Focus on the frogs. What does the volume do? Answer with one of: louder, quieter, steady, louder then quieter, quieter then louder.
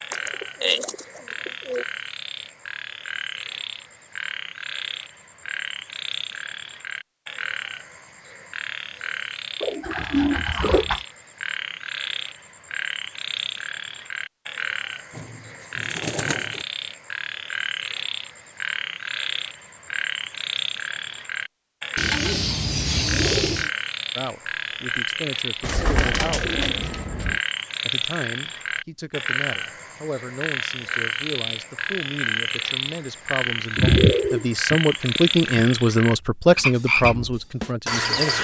louder.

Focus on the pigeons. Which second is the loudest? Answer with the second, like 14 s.
34 s.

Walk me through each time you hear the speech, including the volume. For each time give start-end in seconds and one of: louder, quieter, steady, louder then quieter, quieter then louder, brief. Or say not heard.
24.1-26.6 brief
27.9-38.3 louder.